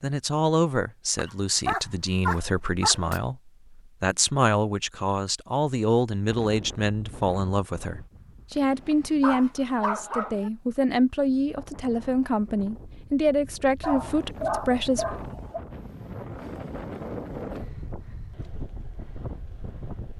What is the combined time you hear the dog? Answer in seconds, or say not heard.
6 s.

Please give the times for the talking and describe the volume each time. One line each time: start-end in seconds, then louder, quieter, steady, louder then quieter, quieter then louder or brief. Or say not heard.
0.0-15.1 steady.